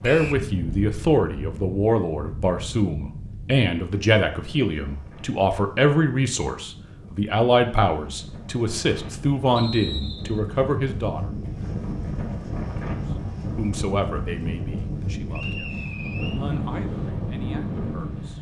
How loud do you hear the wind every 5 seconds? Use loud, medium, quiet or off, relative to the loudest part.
medium, medium, loud, loud.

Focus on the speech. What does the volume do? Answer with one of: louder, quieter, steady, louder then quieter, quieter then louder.
quieter.